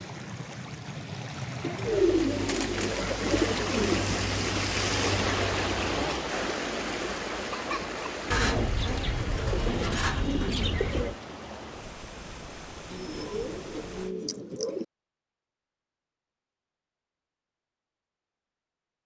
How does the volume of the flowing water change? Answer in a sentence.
The loudness of the flowing water goes up, then down.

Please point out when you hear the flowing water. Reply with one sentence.
The flowing water can be heard from 0.0 to 14.2 s.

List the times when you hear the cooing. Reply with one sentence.
The cooing can be heard from 1.6 to 4.1 s, from 8.3 to 11.2 s and from 12.9 to 14.8 s.